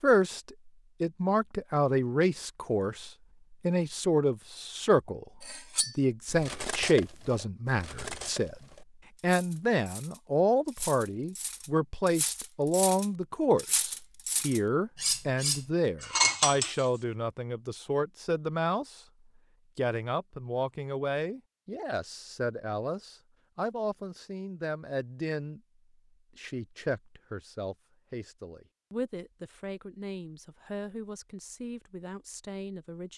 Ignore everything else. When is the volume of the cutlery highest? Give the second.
16 s.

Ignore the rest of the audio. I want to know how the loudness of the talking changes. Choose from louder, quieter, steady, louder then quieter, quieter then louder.
quieter.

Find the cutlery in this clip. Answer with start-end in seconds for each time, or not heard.
5.4-16.9.